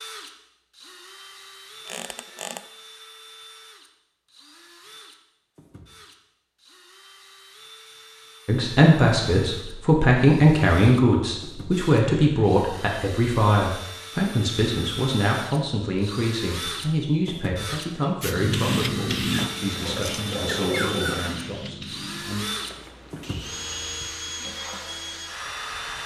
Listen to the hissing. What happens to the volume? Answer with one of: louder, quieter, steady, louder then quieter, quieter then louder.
quieter.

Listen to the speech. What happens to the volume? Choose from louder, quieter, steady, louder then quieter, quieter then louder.
quieter.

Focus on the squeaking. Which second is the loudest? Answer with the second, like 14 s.
21 s.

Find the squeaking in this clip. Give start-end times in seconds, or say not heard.
1.9-2.6, 19.3-21.2.